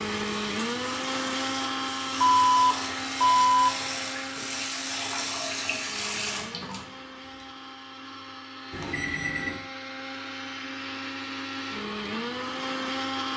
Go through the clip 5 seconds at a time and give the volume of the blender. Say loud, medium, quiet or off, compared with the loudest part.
loud, medium, loud.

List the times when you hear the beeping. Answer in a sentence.
The beeping can be heard from 2.2 to 3.7 s and from 8.7 to 9.7 s.